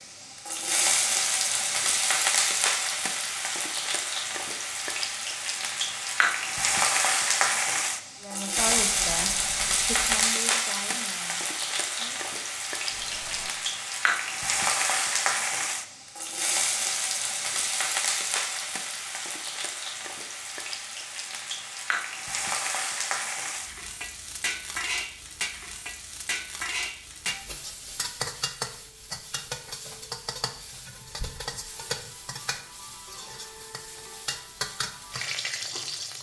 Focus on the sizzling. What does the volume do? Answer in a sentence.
The volume of the sizzling goes down.